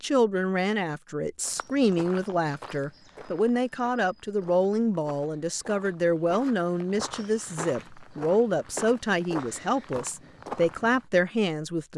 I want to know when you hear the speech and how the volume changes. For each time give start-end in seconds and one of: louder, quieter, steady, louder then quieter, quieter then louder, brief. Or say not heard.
0.0-11.9 steady.